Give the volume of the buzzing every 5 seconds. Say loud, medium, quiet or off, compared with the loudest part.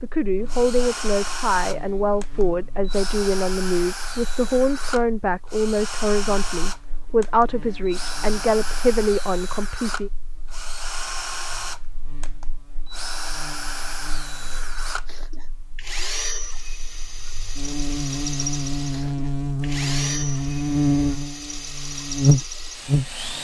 quiet, quiet, quiet, medium, loud.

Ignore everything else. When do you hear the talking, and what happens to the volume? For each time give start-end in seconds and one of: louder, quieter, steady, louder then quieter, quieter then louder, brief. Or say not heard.
0.0-10.1 steady.